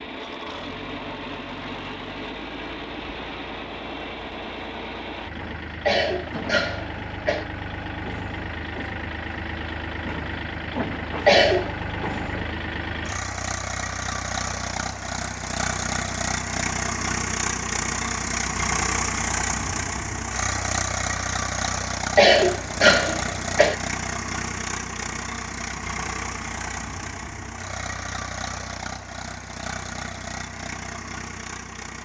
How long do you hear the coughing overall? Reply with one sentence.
You can hear the coughing for 4 seconds altogether.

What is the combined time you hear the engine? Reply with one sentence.
The engine can be heard for 32 seconds in total.